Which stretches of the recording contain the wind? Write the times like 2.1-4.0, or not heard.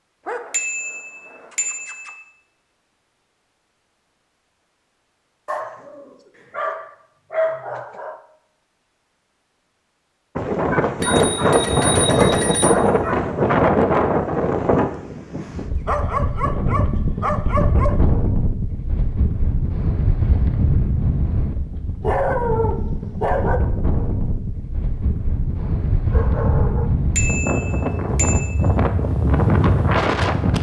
10.3-30.5.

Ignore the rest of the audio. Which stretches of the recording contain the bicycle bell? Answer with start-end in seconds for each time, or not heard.
0.5-2.2, 11.0-12.8, 27.1-28.6.